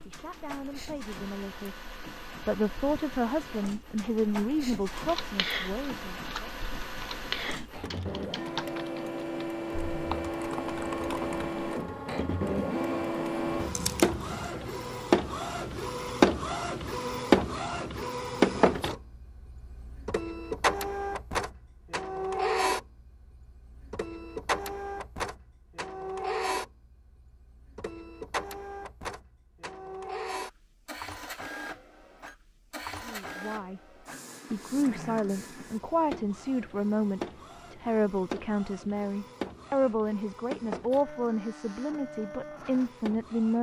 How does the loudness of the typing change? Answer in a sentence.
The volume of the typing goes down, then up.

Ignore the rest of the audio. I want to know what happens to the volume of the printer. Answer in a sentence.
The loudness of the printer goes up, then down.